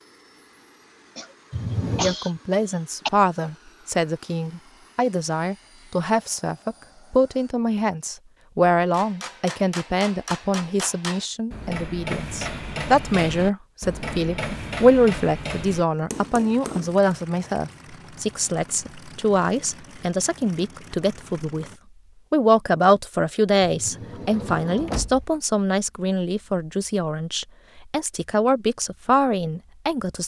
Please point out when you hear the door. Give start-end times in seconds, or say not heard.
1.5-2.1, 23.6-25.3.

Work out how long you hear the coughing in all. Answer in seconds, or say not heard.
2 s.